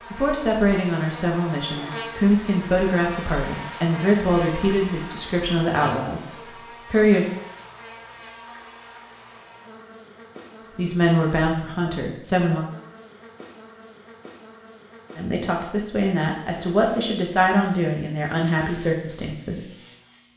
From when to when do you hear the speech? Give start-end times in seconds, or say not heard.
0.1-7.3, 10.8-12.7, 15.2-19.6.